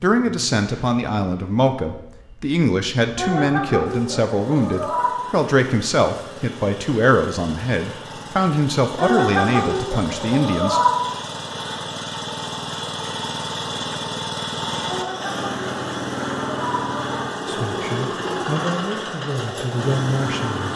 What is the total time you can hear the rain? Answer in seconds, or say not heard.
not heard.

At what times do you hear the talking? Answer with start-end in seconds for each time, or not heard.
0.0-10.8, 17.4-20.7.